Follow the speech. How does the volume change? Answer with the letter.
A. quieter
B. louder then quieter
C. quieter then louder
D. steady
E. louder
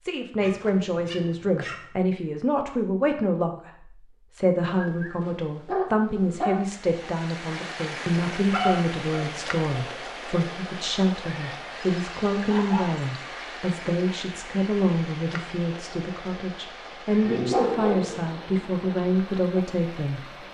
D.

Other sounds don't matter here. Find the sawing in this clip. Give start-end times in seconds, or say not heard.
not heard.